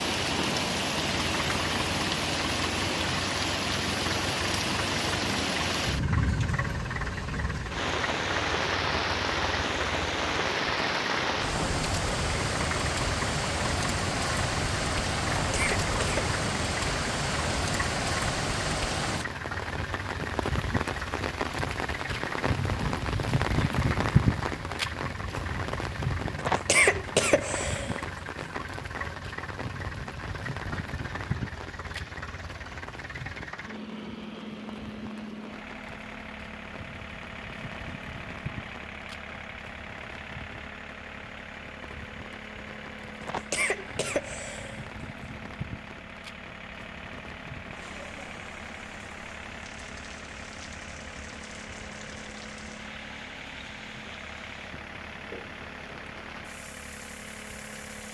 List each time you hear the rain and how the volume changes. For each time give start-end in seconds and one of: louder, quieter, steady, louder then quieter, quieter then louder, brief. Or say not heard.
0.0-58.1 quieter.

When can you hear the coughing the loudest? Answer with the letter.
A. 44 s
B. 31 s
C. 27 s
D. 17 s
C.